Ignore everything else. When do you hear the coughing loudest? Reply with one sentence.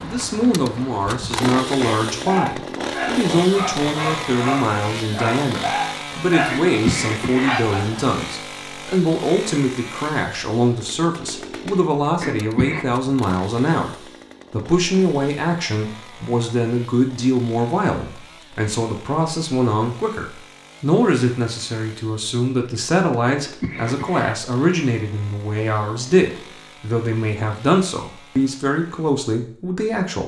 The loudest moment of the coughing is at 7 seconds.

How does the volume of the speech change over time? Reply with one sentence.
The volume of the speech stays about the same.